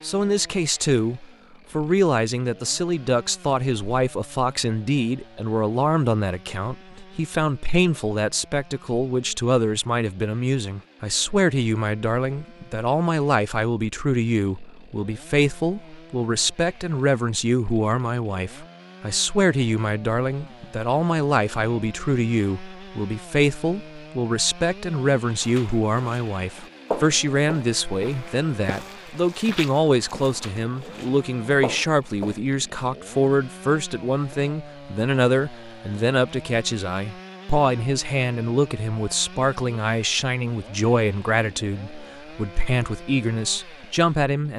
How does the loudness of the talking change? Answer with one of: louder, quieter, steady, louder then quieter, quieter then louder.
steady.